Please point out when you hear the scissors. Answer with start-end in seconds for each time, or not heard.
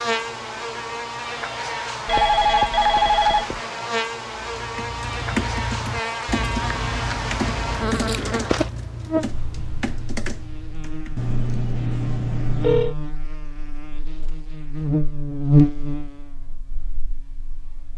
6.3-8.3.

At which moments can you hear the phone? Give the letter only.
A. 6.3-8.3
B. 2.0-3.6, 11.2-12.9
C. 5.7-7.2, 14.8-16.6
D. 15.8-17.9
B.